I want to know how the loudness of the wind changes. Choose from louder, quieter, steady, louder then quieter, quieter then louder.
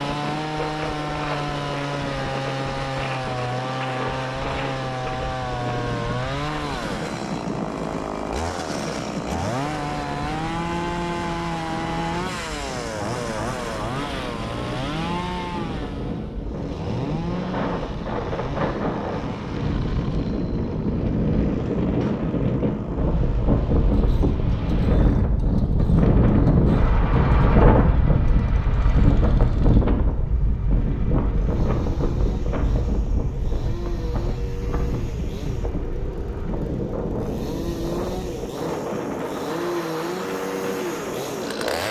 louder then quieter.